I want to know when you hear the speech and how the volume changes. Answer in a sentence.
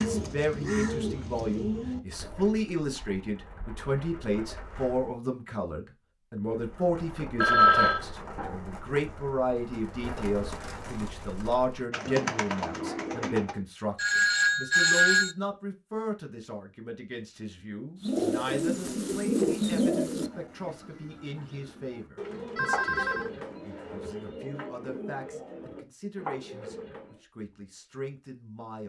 The speech can be heard from 0.0 to 28.8 s, getting quieter.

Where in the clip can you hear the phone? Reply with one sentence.
You can hear the phone from 7.4 to 8.0 s, from 13.9 to 15.3 s and from 22.6 to 23.3 s.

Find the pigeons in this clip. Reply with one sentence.
The pigeons can be heard from 0.0 to 5.2 s, from 6.5 to 13.6 s and from 18.0 to 27.2 s.